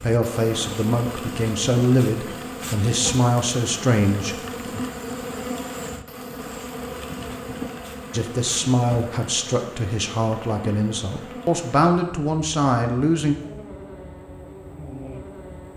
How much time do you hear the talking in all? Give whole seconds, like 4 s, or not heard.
10 s.